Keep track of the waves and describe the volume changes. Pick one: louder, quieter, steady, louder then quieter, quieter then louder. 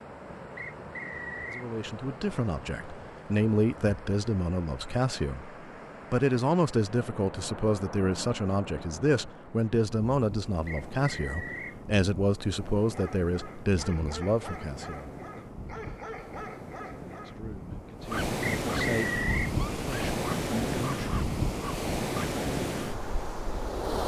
louder.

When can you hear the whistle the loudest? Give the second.
19 s.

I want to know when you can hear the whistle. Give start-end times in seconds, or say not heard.
0.6-1.6, 10.7-11.8, 18.4-19.6.